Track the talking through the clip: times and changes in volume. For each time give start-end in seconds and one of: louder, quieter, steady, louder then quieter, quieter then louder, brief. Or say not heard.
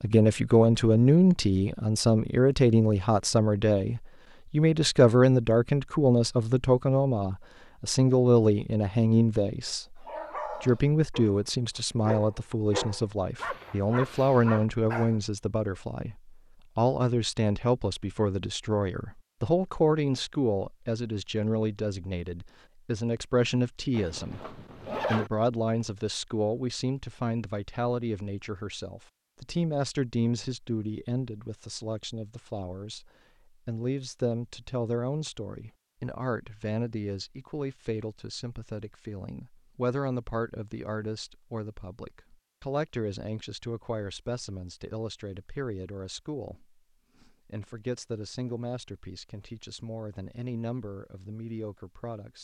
0.0-52.3 quieter.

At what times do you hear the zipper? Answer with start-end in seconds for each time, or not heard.
23.9-25.3.